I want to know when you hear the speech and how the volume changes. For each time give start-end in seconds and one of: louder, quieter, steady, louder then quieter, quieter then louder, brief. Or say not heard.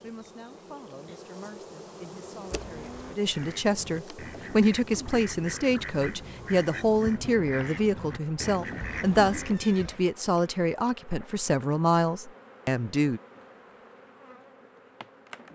0.0-13.2 louder.